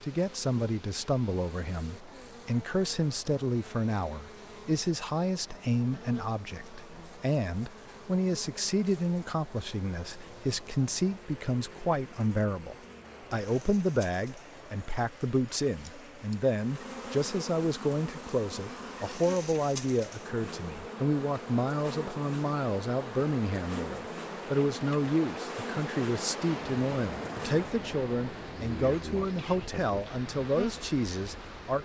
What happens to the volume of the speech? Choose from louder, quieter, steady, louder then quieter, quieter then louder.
steady.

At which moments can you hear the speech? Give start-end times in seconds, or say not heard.
0.0-31.8.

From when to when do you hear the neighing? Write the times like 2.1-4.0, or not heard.
not heard.